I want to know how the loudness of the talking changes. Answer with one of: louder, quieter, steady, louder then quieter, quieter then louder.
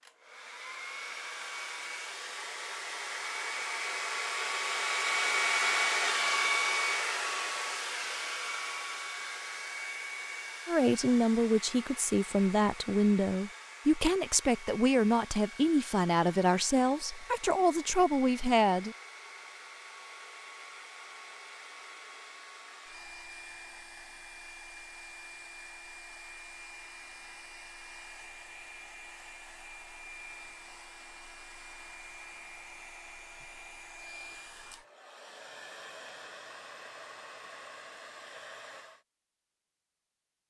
steady.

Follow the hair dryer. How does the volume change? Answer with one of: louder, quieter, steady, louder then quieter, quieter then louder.
quieter.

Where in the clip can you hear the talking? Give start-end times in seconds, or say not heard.
10.7-18.9.